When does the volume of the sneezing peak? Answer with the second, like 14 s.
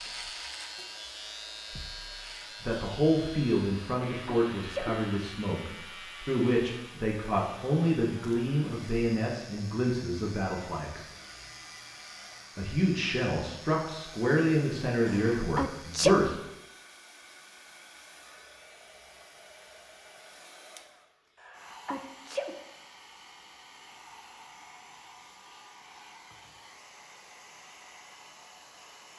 16 s.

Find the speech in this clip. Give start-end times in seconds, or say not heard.
2.6-11.1, 12.6-16.4.